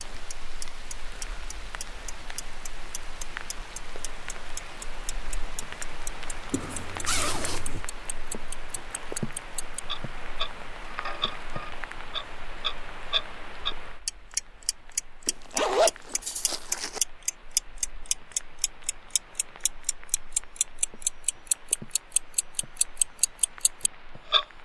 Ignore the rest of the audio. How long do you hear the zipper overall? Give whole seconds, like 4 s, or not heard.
3 s.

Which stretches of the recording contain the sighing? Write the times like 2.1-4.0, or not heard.
not heard.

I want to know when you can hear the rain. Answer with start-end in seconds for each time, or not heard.
0.0-24.6.